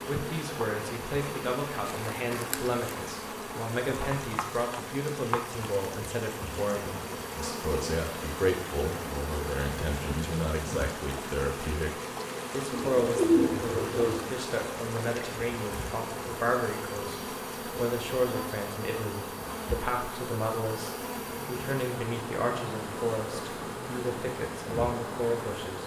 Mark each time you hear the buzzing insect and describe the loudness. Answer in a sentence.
You can hear the buzzing insect from 0.0 to 25.8 s, at a steady volume.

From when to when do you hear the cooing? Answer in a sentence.
You can hear the cooing from 12.7 to 14.2 s.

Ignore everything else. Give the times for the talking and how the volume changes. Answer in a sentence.
The talking can be heard from 0.1 to 25.8 s, at a steady volume.